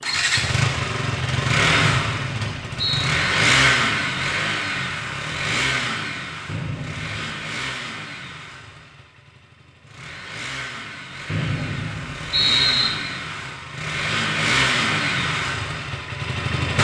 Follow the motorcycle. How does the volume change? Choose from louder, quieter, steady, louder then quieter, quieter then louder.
quieter then louder.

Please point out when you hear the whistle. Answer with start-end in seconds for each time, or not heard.
1.8-3.0, 6.5-7.3, 11.2-12.9.